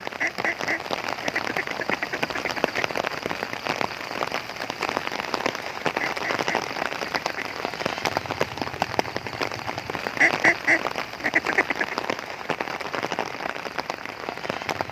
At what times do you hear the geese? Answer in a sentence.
The geese can be heard from 0.2 to 2.9 s, from 6.0 to 7.5 s and from 10.2 to 11.9 s.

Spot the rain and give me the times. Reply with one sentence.
The rain can be heard from 0.0 to 14.8 s.